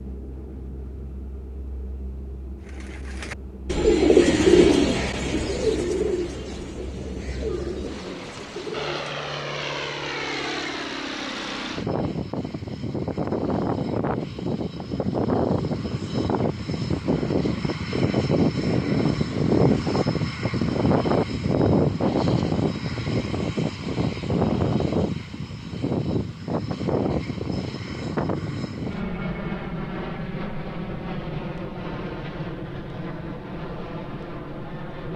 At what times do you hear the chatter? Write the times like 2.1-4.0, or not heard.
not heard.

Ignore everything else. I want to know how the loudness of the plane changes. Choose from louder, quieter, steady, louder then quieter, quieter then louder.
louder then quieter.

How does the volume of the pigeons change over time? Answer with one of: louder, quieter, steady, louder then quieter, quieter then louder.
quieter.